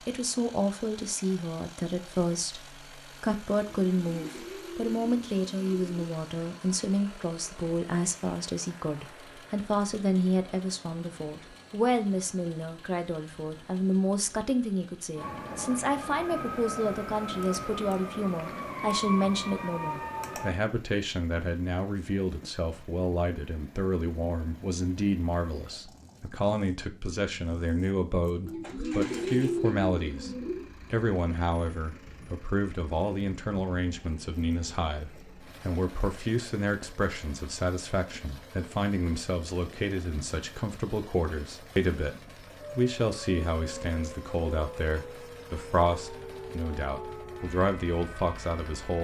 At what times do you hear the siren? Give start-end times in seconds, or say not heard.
15.2-20.6, 42.6-48.9.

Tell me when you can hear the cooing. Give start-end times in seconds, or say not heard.
3.9-6.0, 28.4-30.7.